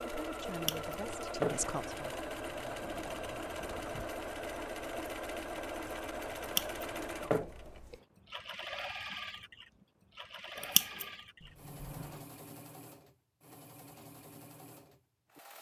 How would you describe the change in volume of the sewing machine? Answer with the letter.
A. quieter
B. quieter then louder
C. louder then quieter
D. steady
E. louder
A.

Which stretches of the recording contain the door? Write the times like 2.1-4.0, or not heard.
2.8-4.1, 11.4-12.3.